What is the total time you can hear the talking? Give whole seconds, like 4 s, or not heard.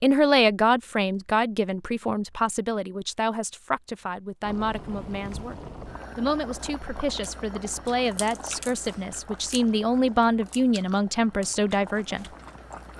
12 s.